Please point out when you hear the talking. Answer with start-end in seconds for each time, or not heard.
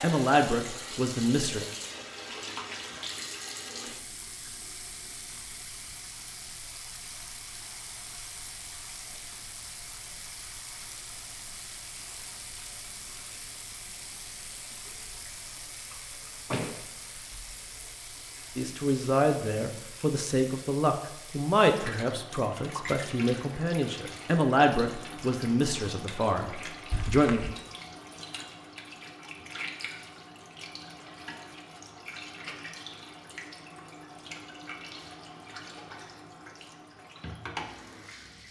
0.0-1.6, 18.6-27.4.